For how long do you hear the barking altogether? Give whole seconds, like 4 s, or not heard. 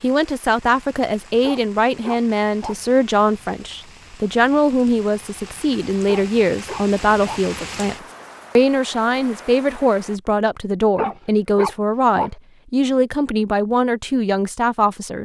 4 s.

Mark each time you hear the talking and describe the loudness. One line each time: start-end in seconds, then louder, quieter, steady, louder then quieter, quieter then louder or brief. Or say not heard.
0.0-8.0 steady
8.6-15.1 steady.